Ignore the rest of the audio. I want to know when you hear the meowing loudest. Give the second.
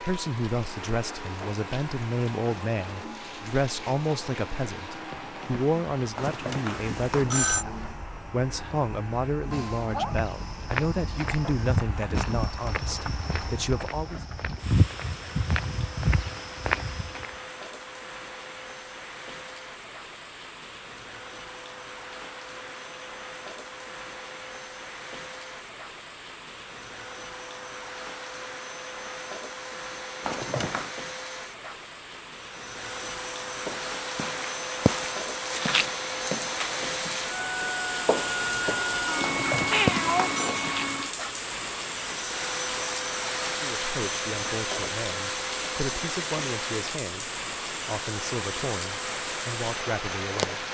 40 s.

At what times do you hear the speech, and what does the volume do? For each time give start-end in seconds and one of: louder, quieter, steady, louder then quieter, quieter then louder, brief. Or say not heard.
0.0-14.2 steady
43.4-50.6 steady.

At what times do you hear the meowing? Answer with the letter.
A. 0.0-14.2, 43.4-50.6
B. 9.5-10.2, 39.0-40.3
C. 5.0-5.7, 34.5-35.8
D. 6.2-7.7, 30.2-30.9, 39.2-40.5
B.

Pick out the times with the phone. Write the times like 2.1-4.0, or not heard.
6.2-7.7, 30.2-30.9, 39.2-40.5.